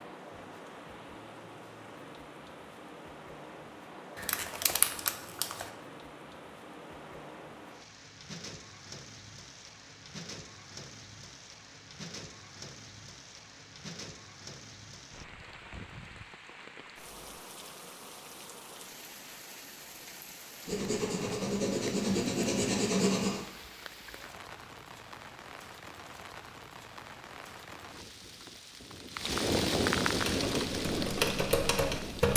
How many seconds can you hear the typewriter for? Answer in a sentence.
You can hear the typewriter for 2 seconds altogether.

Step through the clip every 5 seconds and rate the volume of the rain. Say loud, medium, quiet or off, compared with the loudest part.
quiet, quiet, quiet, quiet, quiet, loud, loud.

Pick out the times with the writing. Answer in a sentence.
The writing can be heard from 20.6 to 23.4 s.